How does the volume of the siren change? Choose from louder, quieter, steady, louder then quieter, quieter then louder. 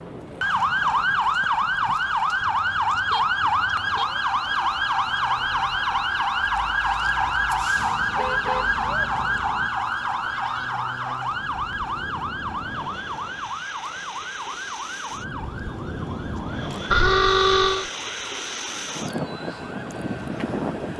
quieter.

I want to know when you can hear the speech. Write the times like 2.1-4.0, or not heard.
not heard.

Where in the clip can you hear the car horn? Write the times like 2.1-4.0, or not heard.
2.4-4.0, 7.8-9.7, 16.9-17.9.